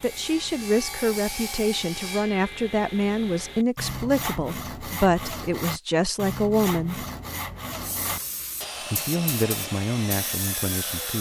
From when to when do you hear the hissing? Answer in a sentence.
The hissing can be heard from 7.8 to 11.1 s.